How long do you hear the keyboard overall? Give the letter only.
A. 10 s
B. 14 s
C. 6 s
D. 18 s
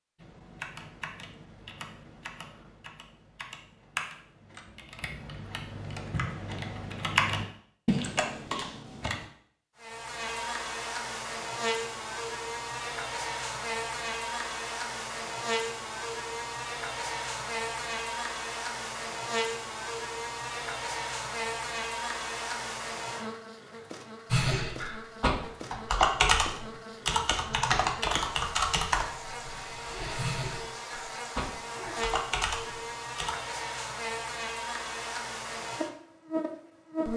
D.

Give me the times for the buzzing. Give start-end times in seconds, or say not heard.
9.8-37.1.